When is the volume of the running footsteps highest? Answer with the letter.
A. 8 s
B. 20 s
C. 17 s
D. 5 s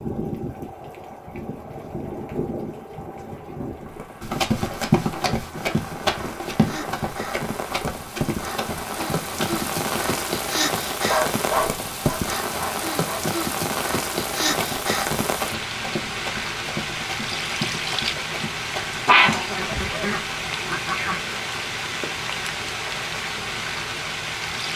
D.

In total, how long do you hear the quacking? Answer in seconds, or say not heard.
2 s.